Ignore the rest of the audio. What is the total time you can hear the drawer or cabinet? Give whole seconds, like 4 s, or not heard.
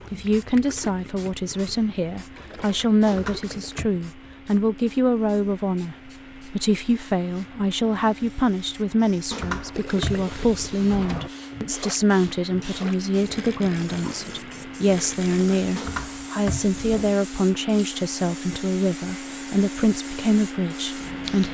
4 s.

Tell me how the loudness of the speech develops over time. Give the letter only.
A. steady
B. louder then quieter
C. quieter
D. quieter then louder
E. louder
A.